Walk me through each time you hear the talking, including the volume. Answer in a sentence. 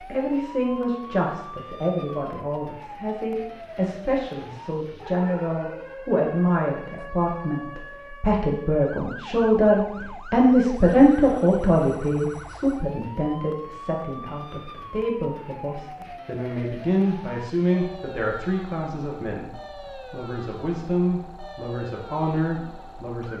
The talking can be heard from 0.1 to 23.3 s, getting louder then quieter.